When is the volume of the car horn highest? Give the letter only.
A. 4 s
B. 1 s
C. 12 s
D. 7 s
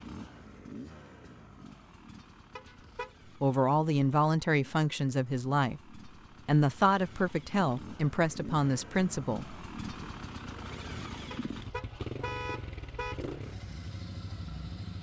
C.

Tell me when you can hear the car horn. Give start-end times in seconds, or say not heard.
2.5-3.1, 11.3-13.2.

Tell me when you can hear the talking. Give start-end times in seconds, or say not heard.
3.4-10.1.